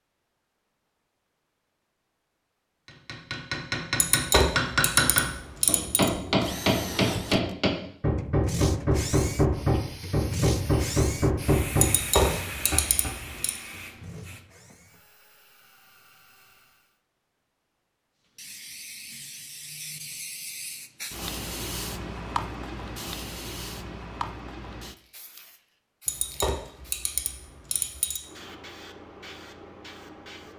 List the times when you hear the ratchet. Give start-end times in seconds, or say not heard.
4.0-6.1, 11.8-13.6, 26.1-28.2.